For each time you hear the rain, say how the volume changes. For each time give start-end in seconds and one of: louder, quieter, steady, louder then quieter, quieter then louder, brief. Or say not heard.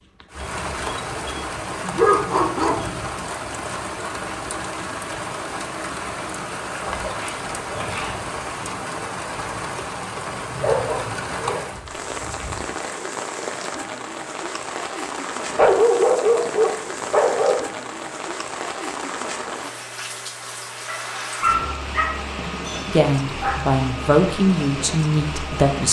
0.0-25.8 steady.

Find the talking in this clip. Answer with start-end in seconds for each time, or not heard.
22.9-25.8.